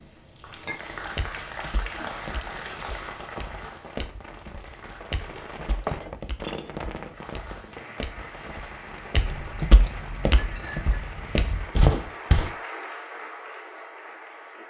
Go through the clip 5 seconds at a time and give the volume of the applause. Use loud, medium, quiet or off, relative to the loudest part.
loud, medium, loud.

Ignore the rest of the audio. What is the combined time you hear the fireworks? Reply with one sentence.
You can hear the fireworks for 12 seconds altogether.